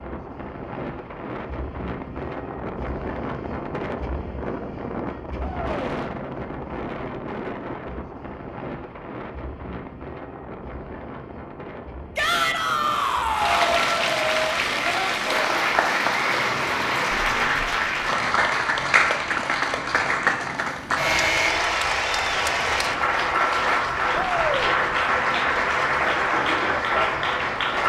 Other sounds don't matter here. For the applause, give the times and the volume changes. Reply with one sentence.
The applause can be heard from 13.3 to 27.8 s, at a steady volume.